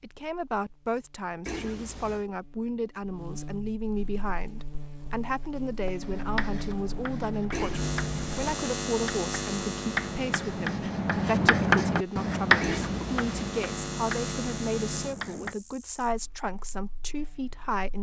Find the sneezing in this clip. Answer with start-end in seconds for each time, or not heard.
1.4-2.2, 7.5-8.4, 12.6-13.3.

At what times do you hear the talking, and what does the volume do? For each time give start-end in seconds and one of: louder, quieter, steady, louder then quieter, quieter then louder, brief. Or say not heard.
0.0-17.9 steady.